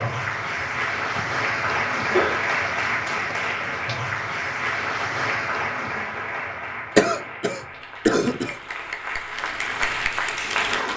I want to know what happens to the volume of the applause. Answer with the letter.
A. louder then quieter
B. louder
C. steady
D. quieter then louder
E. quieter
D.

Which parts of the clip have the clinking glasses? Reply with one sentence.
The clinking glasses can't be heard in this clip.